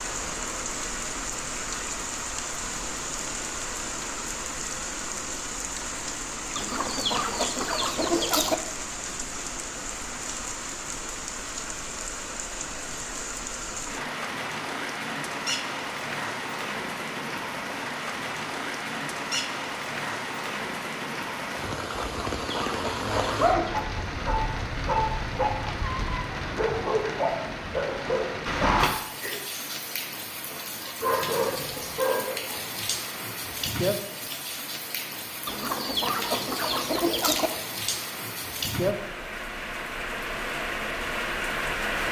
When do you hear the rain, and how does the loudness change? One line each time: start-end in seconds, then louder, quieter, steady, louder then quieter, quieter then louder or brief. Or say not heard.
0.0-42.0 steady.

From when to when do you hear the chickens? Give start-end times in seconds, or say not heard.
6.5-8.6, 22.0-23.9, 35.5-37.5.